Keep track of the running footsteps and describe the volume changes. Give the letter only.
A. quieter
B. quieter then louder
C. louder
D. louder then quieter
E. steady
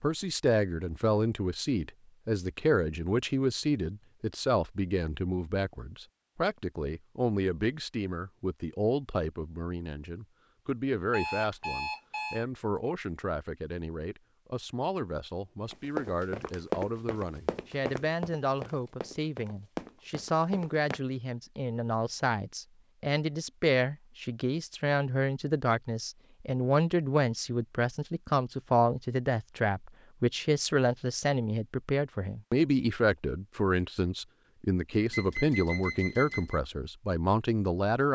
B.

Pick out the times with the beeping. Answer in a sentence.
You can hear the beeping from 11.1 to 12.4 s and from 35.1 to 36.6 s.